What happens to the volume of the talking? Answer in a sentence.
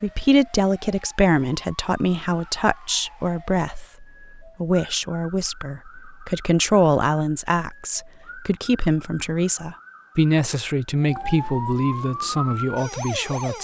The volume of the talking stays about the same.